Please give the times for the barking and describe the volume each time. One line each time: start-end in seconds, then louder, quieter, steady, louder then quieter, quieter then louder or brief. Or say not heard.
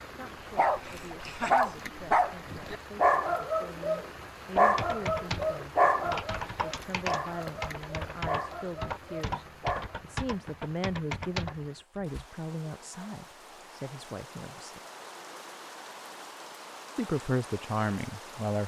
0.6-9.9 quieter.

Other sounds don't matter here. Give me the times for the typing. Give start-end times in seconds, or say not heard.
4.5-12.2.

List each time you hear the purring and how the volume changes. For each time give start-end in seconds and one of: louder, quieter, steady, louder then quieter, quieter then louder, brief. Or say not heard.
not heard.